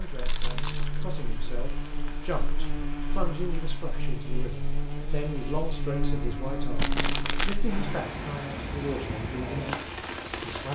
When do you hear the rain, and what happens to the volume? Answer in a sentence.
The rain can be heard from 0.0 to 10.6 s, getting louder.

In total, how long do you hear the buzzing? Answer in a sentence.
You can hear the buzzing for 8 seconds altogether.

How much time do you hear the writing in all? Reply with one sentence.
The writing can't be heard in this clip.